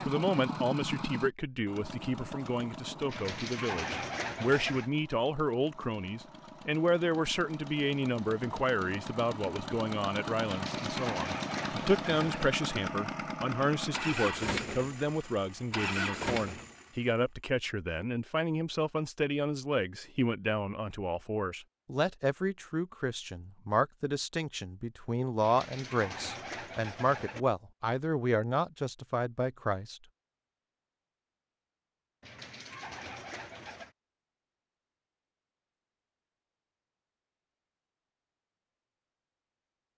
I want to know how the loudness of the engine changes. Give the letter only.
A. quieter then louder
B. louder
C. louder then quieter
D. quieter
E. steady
A.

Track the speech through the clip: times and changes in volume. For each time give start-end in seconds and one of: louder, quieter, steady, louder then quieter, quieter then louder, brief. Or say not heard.
0.1-30.0 steady.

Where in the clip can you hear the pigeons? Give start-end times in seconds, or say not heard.
3.0-4.9, 10.4-12.5, 25.4-27.4, 32.2-34.0.